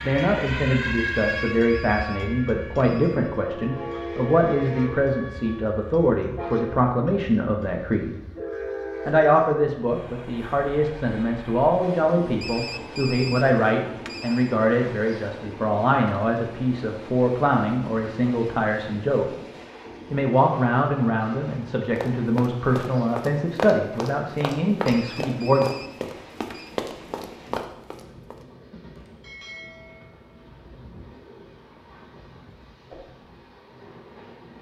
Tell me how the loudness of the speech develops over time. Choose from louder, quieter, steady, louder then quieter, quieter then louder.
steady.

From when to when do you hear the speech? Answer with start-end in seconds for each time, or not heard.
0.0-8.2, 9.1-19.2, 20.1-25.6.